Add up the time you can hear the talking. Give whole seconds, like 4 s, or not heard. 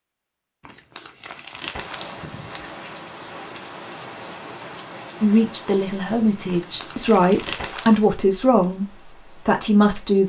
5 s.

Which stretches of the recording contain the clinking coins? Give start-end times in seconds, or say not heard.
not heard.